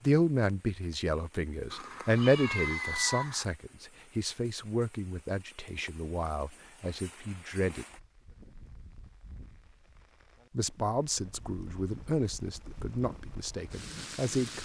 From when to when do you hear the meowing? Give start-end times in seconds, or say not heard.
1.7-3.5.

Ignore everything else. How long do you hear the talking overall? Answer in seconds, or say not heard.
12 s.